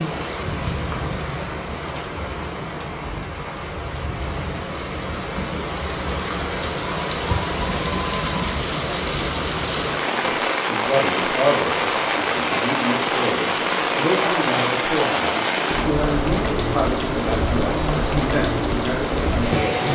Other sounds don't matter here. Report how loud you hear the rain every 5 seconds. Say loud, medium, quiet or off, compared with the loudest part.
medium, loud, loud, loud.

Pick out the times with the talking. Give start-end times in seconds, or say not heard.
10.2-19.8.